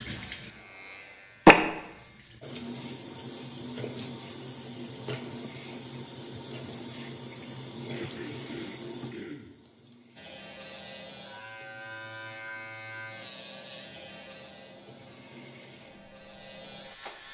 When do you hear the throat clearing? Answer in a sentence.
The throat clearing can be heard from 7.9 to 9.6 s.